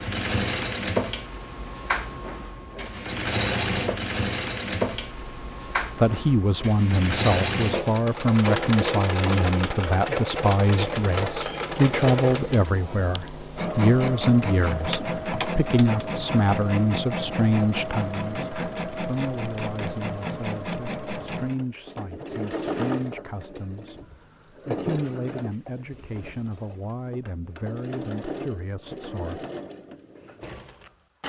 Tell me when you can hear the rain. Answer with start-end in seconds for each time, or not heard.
not heard.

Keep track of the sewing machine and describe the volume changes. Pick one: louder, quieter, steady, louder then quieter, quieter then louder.
quieter.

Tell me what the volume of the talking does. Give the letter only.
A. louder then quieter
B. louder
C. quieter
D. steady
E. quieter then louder
C.